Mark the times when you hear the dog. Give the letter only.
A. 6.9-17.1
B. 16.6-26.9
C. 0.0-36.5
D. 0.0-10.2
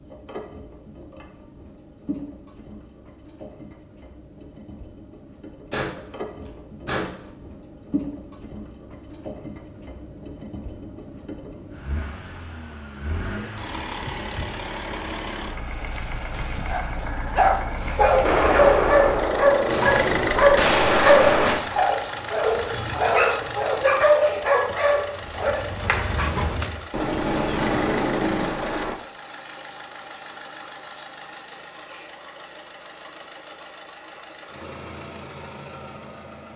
B.